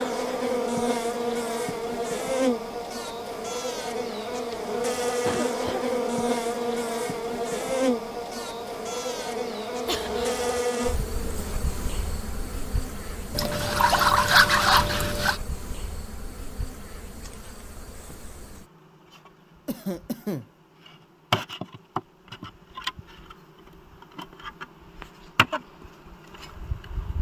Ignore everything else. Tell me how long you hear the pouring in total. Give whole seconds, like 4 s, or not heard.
2 s.